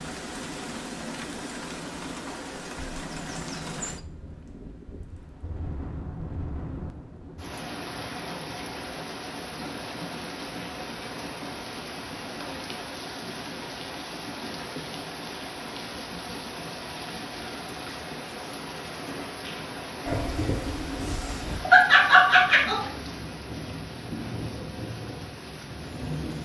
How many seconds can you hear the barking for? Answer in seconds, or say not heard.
3 s.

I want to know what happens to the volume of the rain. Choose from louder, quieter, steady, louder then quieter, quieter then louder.
steady.